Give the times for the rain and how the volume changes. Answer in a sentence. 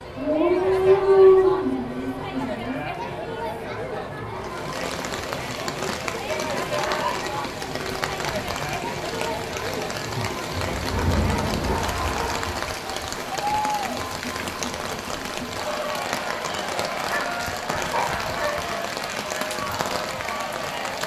The rain can be heard from 4.3 to 21.0 s, at a steady volume.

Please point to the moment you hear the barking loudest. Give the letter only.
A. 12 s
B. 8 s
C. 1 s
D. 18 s
C.